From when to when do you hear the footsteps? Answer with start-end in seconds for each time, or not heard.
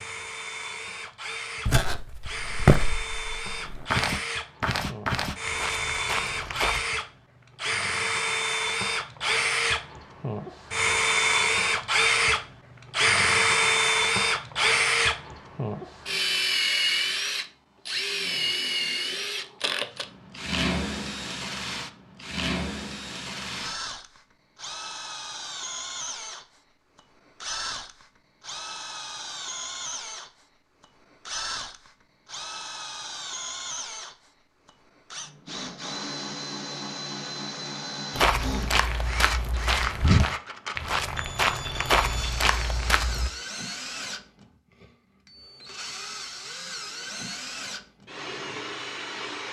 1.6-6.8, 38.1-43.3.